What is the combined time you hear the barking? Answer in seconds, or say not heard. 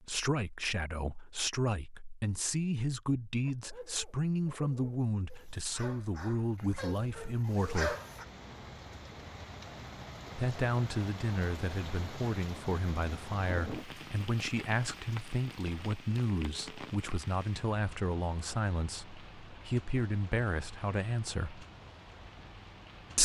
5 s.